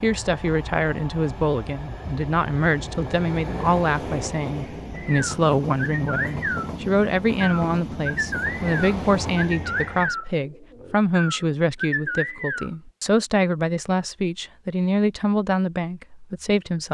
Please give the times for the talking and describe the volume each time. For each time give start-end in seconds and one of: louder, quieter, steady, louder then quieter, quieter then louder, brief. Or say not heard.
0.0-16.8 steady.